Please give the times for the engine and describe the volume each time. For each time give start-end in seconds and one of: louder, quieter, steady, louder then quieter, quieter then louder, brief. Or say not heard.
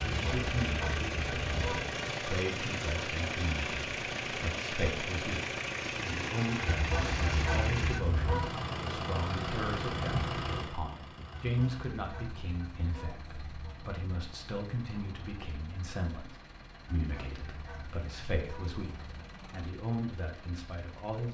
0.0-21.3 quieter.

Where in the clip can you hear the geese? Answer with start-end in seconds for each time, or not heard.
0.1-2.0, 6.7-8.4, 11.3-13.9, 16.9-19.4.